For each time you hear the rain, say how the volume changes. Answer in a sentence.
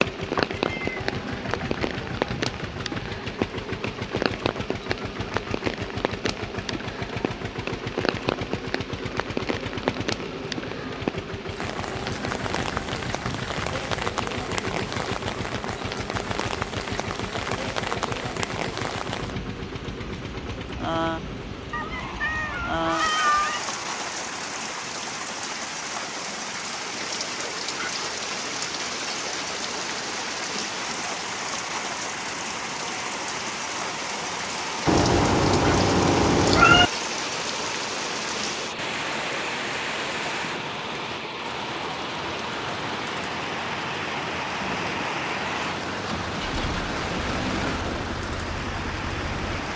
You can hear the rain from 0.0 to 49.7 s, at a steady volume.